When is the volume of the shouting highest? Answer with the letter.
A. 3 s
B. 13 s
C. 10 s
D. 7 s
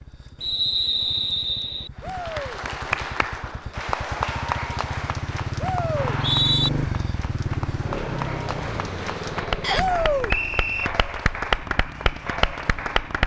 C.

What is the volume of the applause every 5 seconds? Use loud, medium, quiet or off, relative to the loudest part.
loud, medium, loud.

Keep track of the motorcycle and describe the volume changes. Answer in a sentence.
The volume of the motorcycle goes up, then down.